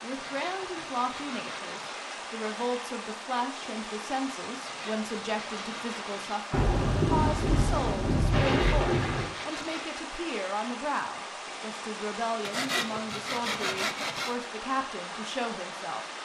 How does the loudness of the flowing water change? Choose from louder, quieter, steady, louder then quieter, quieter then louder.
steady.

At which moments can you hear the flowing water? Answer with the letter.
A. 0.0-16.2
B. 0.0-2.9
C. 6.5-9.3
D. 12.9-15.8
A.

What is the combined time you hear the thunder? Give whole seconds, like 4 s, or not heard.
3 s.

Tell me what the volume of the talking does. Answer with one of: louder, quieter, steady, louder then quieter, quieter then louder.
steady.